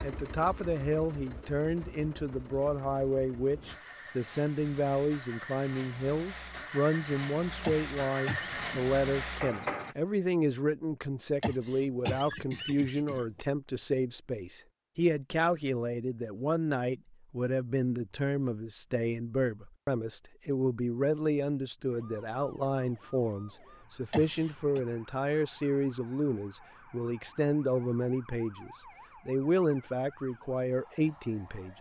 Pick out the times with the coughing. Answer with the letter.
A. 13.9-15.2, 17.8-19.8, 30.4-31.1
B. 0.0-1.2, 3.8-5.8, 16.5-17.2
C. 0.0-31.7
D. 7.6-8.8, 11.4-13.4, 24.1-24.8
D.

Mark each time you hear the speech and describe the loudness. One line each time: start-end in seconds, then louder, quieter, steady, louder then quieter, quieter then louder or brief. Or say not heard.
0.0-31.7 steady.